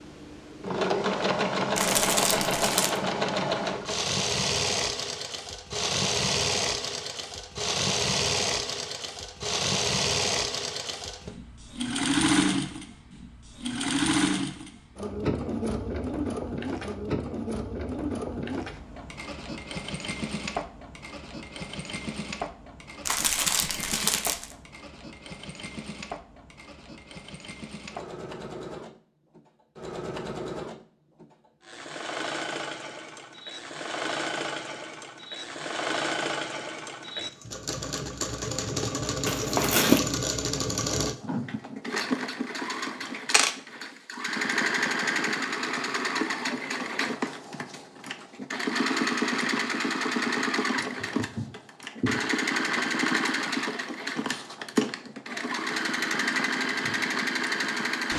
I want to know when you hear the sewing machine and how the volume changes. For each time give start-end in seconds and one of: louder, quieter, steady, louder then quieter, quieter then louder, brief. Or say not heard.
0.0-58.1 quieter then louder.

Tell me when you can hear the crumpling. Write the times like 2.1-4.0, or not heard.
1.8-3.0, 23.1-24.6, 39.2-40.0.